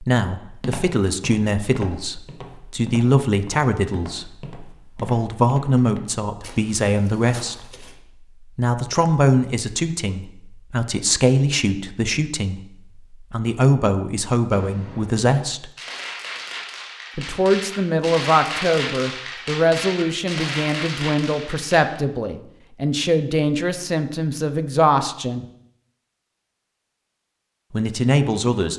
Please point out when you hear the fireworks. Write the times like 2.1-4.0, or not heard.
14.5-22.0.